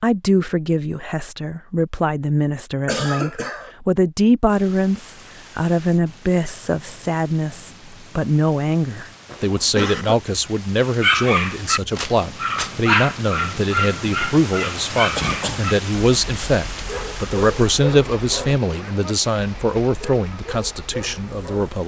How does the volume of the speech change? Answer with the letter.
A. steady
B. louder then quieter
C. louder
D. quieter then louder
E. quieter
A.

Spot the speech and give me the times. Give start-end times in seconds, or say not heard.
0.0-21.8.